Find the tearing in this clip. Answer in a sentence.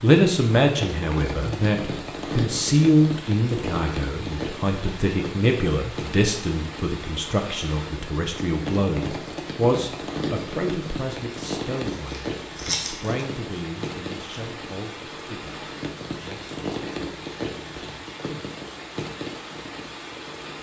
You can hear the tearing from 11.9 to 13.2 s.